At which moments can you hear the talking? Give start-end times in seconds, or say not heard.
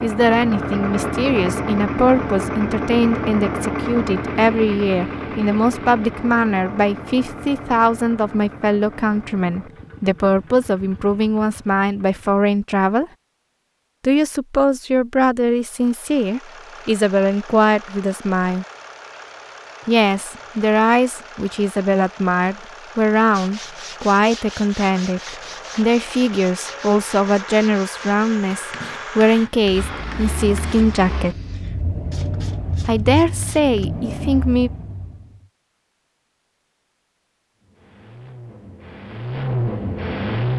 0.0-13.1, 14.0-18.6, 19.9-31.4, 32.9-34.7.